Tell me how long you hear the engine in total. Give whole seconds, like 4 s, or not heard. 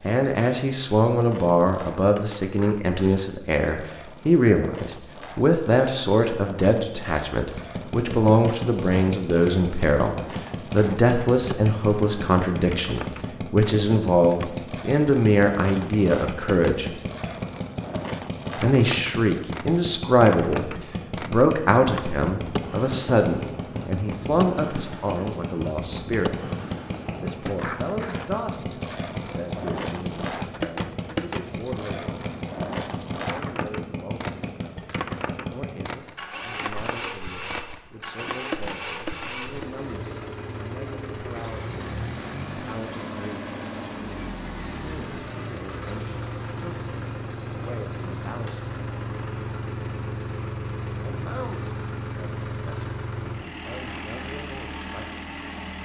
48 s.